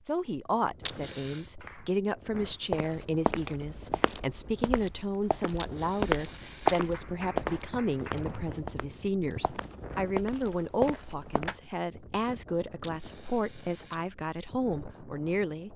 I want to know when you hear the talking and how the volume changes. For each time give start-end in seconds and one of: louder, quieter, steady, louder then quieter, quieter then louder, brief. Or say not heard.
0.1-15.7 steady.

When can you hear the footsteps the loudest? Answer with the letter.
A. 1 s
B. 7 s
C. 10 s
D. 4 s
B.